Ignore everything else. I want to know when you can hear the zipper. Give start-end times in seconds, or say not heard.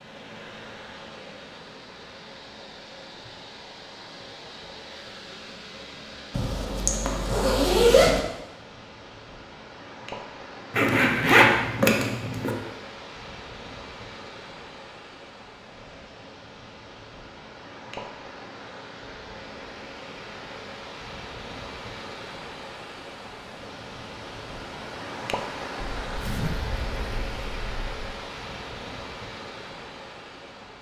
6.3-8.2, 10.8-12.6, 26.0-27.9.